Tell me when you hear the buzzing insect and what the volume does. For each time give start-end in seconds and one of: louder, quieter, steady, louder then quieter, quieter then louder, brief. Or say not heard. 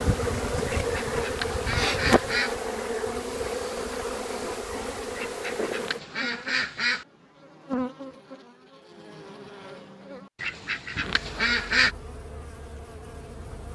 0.0-13.6 quieter.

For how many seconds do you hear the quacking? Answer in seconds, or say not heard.
5 s.